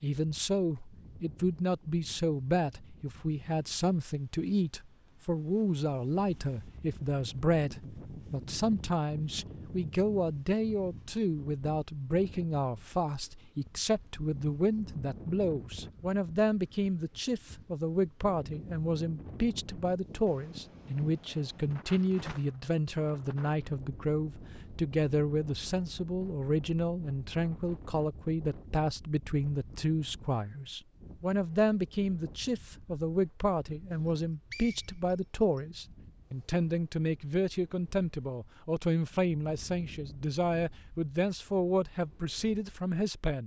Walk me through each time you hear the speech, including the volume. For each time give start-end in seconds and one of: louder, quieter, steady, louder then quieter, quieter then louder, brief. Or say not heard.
0.0-43.4 steady.